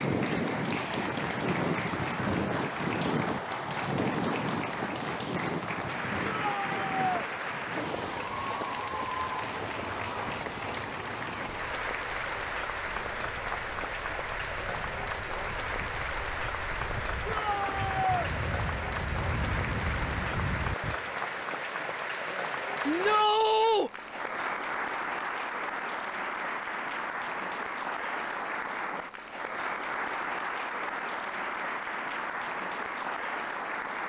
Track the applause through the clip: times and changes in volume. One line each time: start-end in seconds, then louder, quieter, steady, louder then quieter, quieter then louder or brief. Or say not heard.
0.0-34.0 steady.